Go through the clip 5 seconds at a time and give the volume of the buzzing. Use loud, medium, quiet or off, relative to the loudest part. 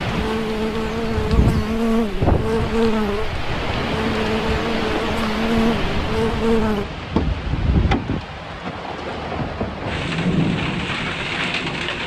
loud, loud, off.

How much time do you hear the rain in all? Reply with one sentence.
The rain can be heard for 12 seconds in total.